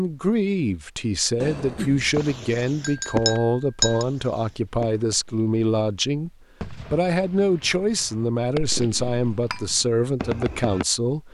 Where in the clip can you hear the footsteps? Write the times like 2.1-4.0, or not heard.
not heard.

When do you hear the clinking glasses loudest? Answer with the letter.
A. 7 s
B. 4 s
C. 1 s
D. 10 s
B.